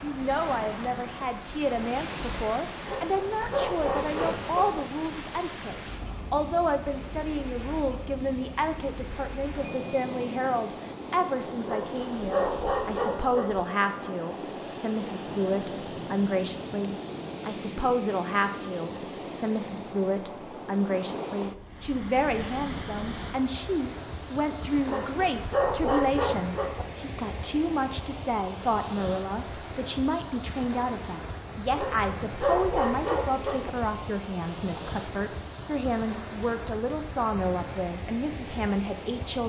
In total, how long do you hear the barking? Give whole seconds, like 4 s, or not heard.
8 s.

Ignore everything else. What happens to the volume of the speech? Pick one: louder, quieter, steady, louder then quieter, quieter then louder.
steady.